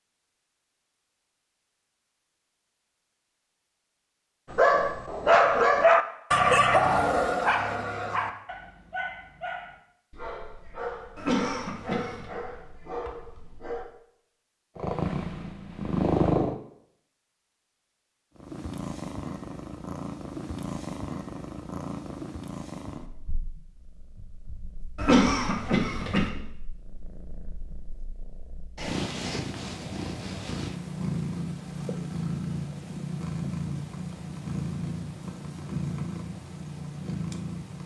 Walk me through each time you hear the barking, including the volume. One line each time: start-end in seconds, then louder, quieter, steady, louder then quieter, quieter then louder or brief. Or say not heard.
4.5-13.8 quieter.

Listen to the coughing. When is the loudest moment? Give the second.
25 s.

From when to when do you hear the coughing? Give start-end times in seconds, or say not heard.
11.2-12.3, 24.9-26.3.